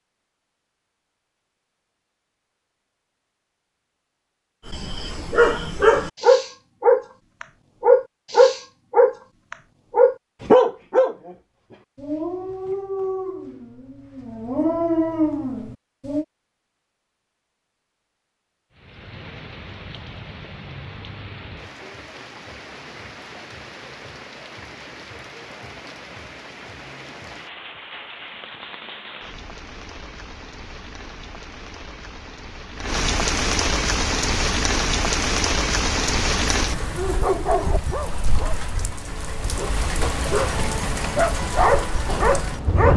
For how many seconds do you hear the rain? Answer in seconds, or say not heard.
24 s.